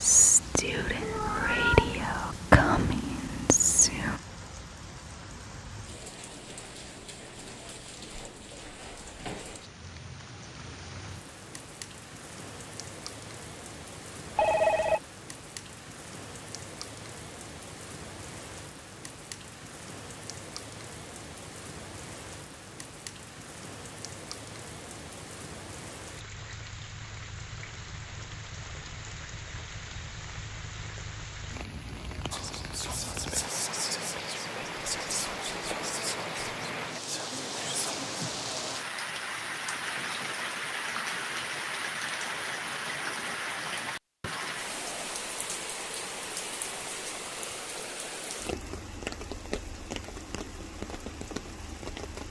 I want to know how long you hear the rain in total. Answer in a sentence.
You can hear the rain for 52 seconds altogether.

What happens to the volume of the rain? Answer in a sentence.
The volume of the rain goes up.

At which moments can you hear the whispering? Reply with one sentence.
You can hear the whispering from 0.0 to 4.2 s and from 32.3 to 38.1 s.